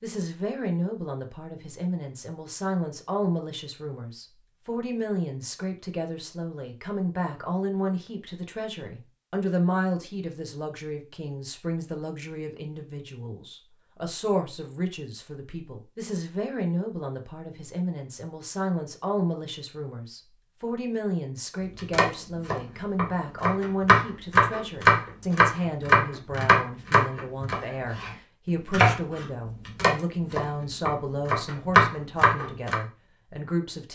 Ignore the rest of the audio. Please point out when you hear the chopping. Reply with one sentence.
You can hear the chopping from 21.8 to 32.8 s.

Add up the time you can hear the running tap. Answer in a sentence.
You can't hear the running tap here.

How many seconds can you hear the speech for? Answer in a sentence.
The speech can be heard for 34 seconds in total.